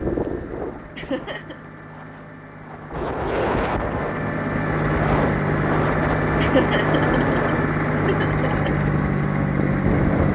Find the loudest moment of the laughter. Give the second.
7 s.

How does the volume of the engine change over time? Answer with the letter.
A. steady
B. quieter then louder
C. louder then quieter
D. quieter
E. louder
E.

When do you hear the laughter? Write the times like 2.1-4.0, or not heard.
0.9-1.6, 6.4-8.7.